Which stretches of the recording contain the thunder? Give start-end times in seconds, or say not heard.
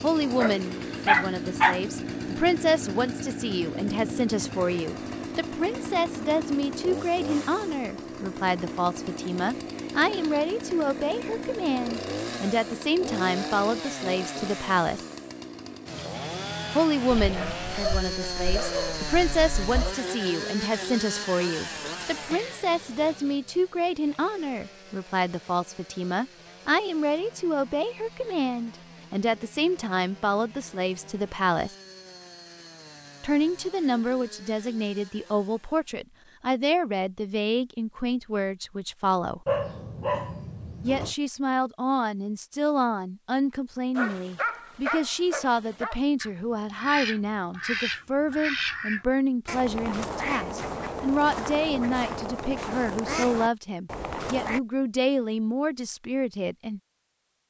not heard.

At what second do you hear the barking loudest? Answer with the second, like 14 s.
1 s.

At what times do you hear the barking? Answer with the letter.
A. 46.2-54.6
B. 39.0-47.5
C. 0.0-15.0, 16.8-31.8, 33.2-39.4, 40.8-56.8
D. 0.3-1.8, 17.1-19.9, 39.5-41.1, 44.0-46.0
D.